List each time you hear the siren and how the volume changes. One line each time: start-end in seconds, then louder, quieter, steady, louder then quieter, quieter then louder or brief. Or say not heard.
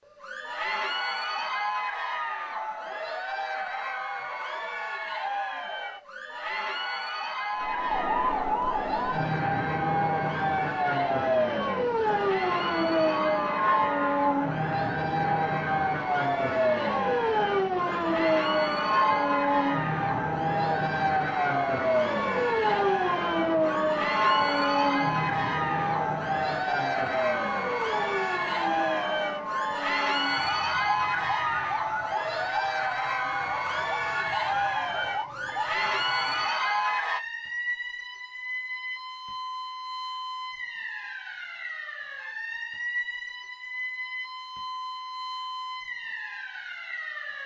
7.5-47.4 quieter.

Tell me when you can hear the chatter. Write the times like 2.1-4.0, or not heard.
0.1-37.2.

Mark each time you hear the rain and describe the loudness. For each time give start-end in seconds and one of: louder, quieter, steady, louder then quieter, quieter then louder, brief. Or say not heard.
not heard.